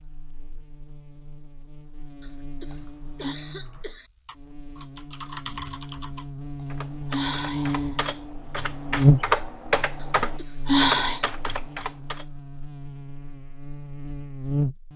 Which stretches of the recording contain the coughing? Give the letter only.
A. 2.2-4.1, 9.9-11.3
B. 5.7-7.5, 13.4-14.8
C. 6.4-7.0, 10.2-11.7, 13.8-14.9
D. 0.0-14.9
A.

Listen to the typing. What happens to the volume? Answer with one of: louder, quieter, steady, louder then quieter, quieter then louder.
louder.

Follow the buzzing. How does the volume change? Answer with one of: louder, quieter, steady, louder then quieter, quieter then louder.
louder then quieter.